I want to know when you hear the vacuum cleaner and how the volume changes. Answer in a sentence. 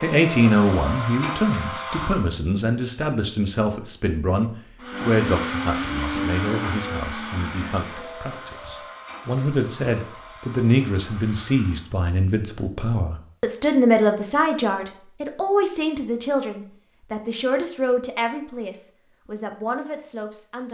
The vacuum cleaner can be heard briefly from 0.0 to 2.3 s; and from 4.8 to 11.8 s, getting quieter.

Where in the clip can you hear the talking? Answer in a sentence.
The talking can be heard from 0.0 to 20.6 s.